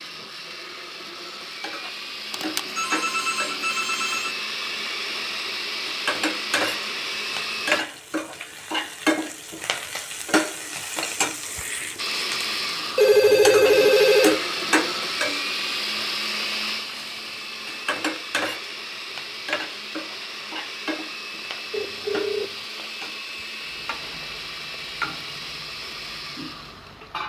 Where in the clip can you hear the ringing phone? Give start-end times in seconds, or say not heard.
2.3-4.3, 12.9-14.4, 21.7-22.6.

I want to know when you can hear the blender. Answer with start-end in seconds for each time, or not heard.
0.0-7.8, 11.9-27.2.